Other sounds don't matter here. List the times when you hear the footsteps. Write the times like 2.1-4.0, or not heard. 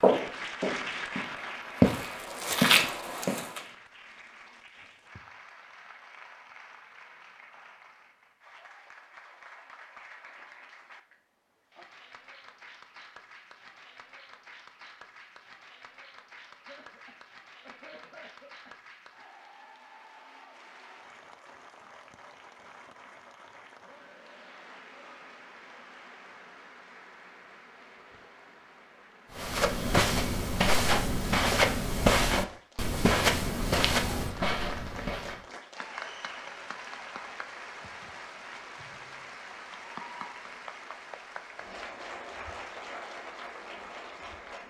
0.0-3.6, 29.4-35.4.